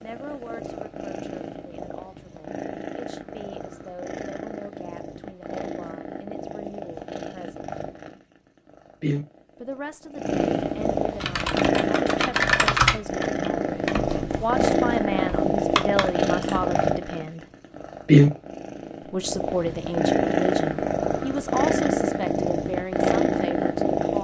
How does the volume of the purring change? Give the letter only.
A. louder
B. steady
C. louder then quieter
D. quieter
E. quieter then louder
A.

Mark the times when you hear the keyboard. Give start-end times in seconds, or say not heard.
11.2-16.7.